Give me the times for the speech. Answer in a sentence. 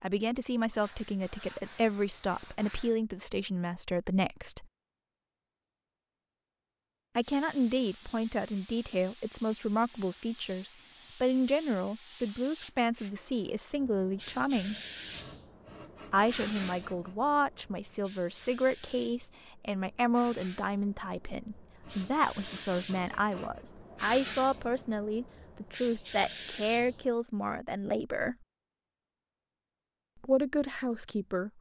You can hear the speech from 0.0 to 4.7 s, from 7.2 to 14.8 s, from 16.1 to 28.4 s and from 30.2 to 31.5 s.